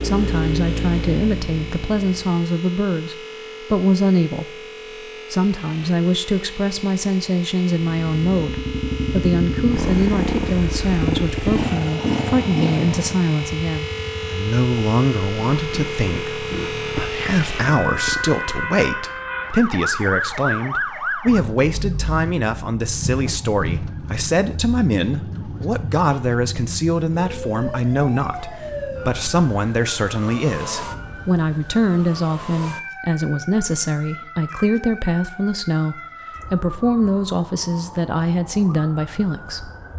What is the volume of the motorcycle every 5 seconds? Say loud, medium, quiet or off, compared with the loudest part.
loud, loud, loud, medium, off, off, off, off.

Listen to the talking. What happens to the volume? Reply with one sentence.
The loudness of the talking stays about the same.